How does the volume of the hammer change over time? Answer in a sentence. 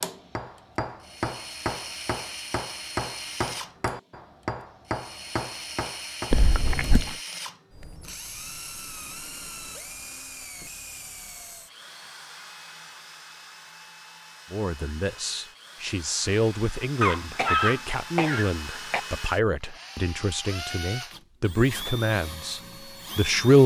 The volume of the hammer stays about the same.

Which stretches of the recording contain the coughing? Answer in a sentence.
The coughing can be heard from 6.3 to 7.2 s and from 17.0 to 19.0 s.